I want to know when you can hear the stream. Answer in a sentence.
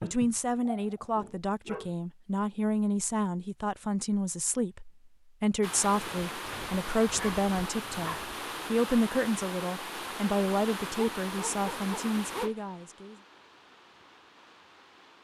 You can hear the stream from 5.6 to 15.1 s.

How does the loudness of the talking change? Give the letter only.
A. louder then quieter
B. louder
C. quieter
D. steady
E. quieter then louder
D.